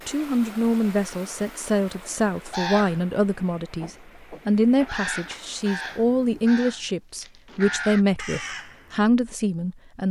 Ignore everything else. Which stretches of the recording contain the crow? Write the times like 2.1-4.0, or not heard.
2.5-3.0, 3.8-9.0.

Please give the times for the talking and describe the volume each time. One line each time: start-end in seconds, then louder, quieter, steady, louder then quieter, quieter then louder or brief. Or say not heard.
0.1-10.0 steady.